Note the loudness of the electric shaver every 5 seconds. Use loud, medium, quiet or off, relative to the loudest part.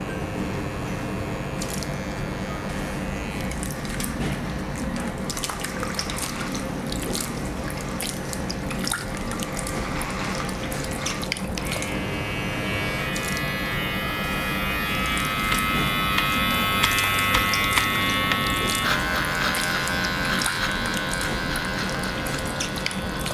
quiet, quiet, medium, loud, medium.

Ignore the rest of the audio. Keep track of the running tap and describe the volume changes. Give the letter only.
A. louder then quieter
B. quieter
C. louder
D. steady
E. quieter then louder
D.